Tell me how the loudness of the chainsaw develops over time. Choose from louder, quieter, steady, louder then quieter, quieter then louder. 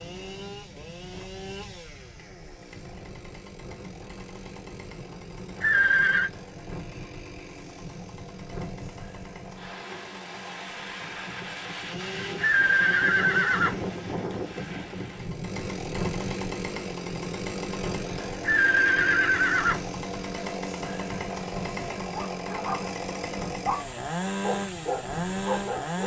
louder.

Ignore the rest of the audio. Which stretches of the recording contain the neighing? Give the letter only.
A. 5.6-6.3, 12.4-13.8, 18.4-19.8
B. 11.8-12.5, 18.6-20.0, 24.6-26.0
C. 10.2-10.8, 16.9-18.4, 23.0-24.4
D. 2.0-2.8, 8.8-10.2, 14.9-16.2
A.